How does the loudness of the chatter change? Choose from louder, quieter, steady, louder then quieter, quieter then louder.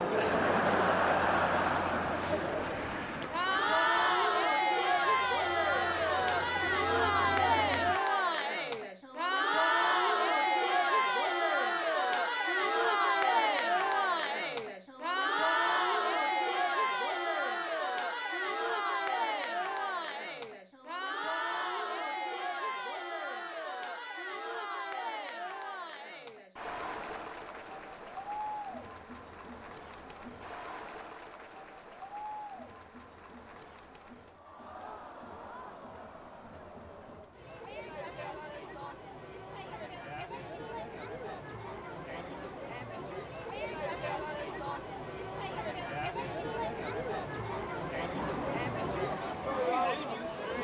quieter then louder.